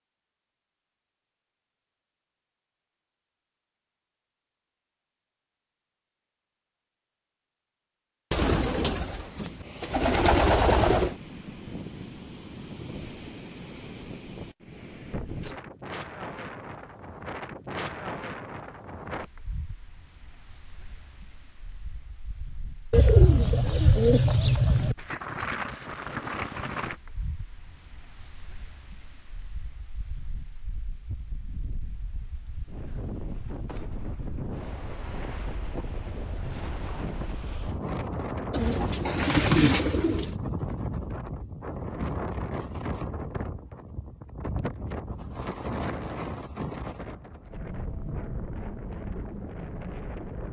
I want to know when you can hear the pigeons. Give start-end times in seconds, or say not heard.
8.3-11.2, 22.9-24.9, 38.5-40.4.